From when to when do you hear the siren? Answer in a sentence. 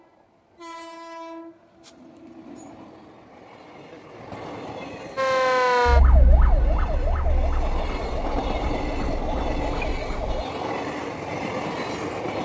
You can hear the siren from 5.2 to 10.4 s.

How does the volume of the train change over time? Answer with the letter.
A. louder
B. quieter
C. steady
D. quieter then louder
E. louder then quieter
A.